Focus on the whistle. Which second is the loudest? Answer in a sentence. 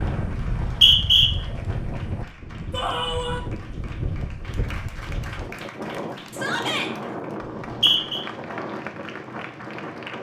The volume of the whistle peaks at 1 second.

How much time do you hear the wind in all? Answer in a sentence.
The wind can be heard for 10 seconds in total.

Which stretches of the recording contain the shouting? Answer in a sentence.
The shouting can be heard from 2.7 to 3.4 s and from 6.3 to 6.9 s.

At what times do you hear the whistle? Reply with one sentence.
You can hear the whistle from 0.4 to 1.3 s and from 7.4 to 8.2 s.